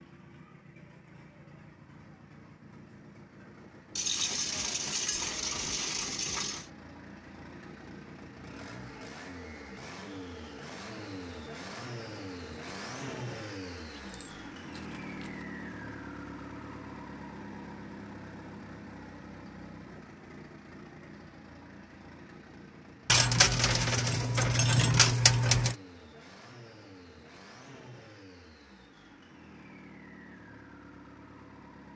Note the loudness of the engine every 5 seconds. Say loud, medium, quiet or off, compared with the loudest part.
medium, medium, loud, loud, medium, medium, medium.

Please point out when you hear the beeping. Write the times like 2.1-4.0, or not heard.
not heard.